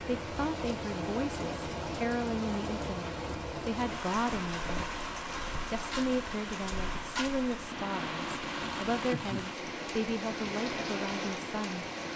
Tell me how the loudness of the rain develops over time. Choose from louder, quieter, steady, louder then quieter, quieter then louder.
steady.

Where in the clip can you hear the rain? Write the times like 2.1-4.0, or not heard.
0.0-12.1.